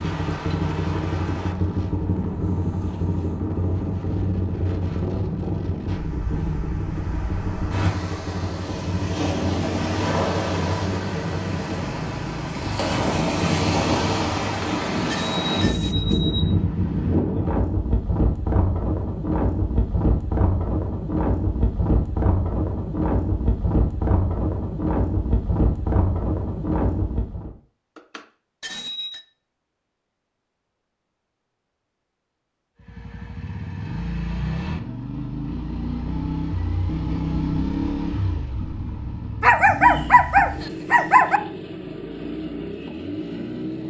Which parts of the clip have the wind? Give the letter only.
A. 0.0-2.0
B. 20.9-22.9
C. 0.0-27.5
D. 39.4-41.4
C.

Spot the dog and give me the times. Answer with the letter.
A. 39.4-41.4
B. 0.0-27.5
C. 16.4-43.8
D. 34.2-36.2
A.